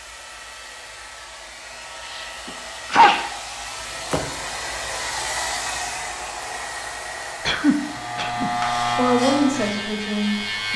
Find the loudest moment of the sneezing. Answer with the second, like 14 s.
3 s.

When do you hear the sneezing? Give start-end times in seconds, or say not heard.
2.0-3.2, 7.5-8.5.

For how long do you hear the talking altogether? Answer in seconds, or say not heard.
2 s.